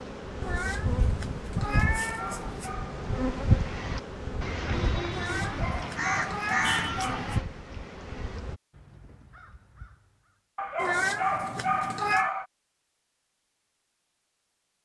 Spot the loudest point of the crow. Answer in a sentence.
The loudest moment of the crow is at 7 seconds.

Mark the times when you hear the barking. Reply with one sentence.
You can hear the barking from 1.7 to 3.0 s, from 5.4 to 7.3 s and from 10.6 to 12.4 s.